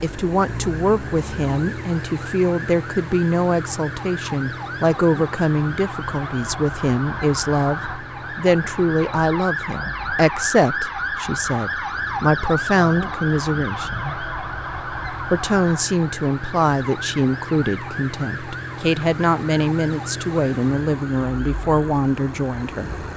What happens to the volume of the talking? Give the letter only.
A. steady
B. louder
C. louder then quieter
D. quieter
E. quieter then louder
A.